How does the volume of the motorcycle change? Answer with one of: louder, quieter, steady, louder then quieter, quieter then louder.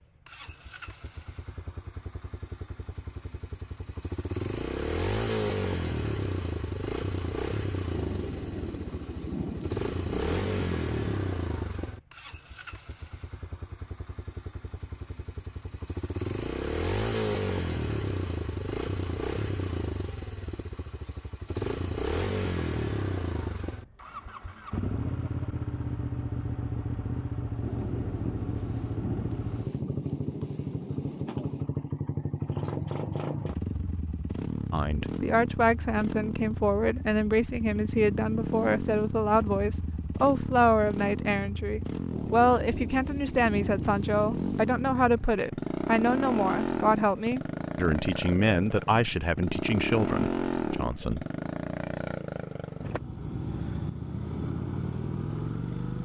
steady.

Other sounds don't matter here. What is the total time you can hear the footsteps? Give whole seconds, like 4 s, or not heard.
not heard.